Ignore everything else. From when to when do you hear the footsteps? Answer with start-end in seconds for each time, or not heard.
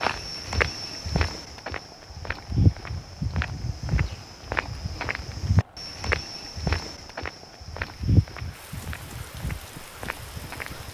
0.0-10.9.